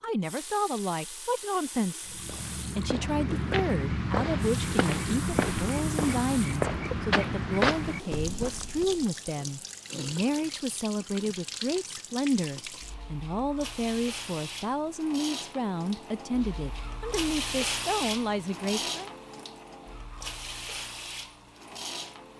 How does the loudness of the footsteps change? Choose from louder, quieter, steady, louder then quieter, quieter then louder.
steady.